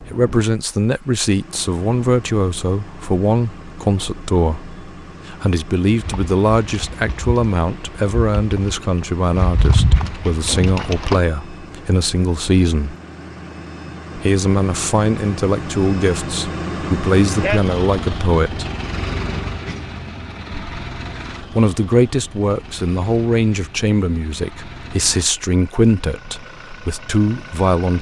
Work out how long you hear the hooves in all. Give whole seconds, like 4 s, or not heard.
5 s.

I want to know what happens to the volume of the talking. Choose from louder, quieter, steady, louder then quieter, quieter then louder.
steady.